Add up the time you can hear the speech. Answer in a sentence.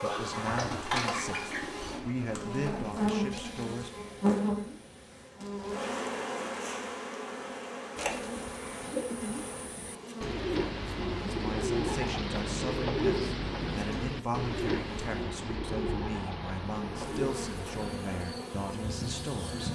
The speech can be heard for 13 seconds in total.